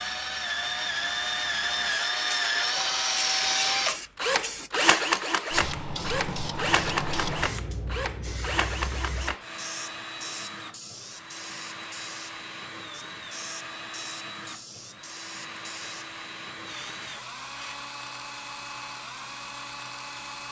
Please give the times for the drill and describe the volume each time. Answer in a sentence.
You can hear the drill from 0.0 to 20.4 s, getting quieter.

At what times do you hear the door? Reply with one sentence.
You can't hear the door here.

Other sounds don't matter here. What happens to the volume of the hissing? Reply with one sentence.
The loudness of the hissing goes up, then down.